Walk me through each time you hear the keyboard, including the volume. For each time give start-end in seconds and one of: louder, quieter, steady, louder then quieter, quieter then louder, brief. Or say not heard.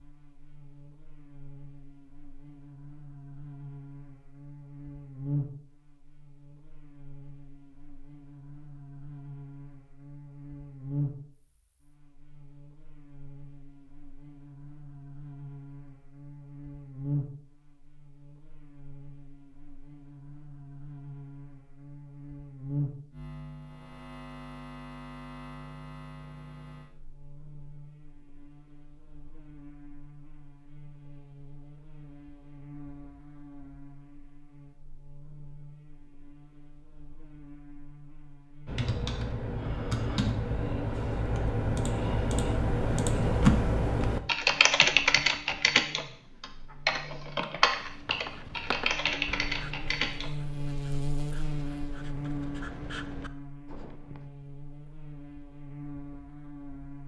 38.6-50.3 louder then quieter.